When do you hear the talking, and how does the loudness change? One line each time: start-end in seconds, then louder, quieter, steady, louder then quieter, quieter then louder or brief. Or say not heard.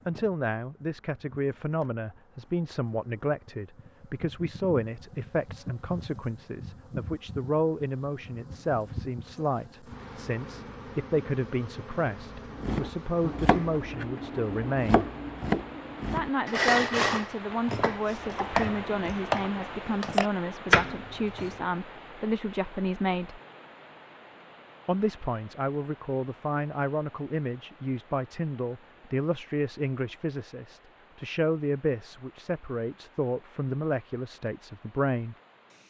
0.1-15.1 steady
16.1-23.4 steady
24.9-35.4 steady.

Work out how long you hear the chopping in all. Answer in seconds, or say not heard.
9 s.